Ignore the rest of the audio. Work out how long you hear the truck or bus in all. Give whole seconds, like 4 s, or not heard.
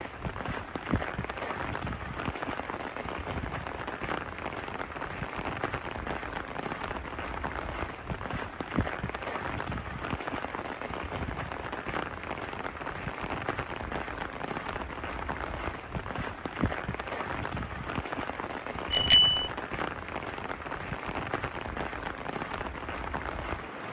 not heard.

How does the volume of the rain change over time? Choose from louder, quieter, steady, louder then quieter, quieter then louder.
steady.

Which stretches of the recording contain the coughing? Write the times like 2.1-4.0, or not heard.
not heard.